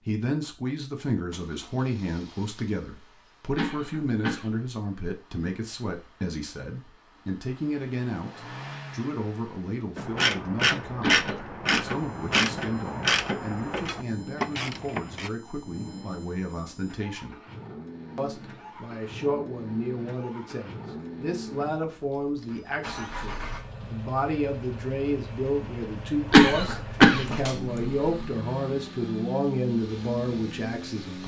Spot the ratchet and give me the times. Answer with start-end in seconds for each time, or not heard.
9.9-15.3.